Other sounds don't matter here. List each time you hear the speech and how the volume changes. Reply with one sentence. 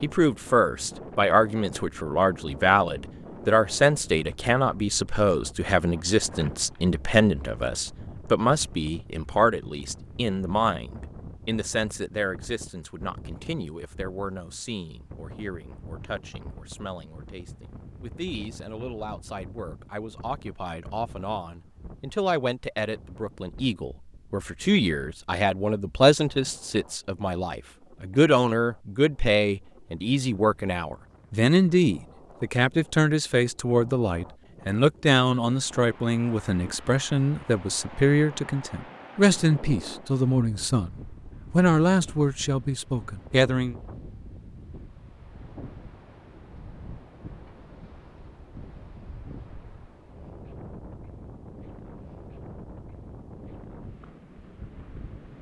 You can hear the speech from 0.0 to 40.9 s, getting quieter then louder; and briefly from 41.5 to 43.8 s.